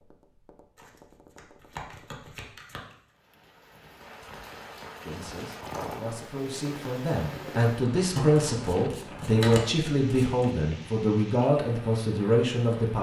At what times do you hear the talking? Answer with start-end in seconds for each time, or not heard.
5.0-12.9.